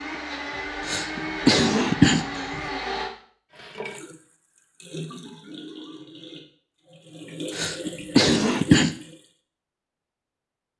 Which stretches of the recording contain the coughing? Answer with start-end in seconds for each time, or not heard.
0.8-2.6, 7.5-8.9.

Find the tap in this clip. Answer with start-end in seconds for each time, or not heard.
3.5-9.2.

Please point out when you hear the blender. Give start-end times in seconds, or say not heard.
0.0-3.1.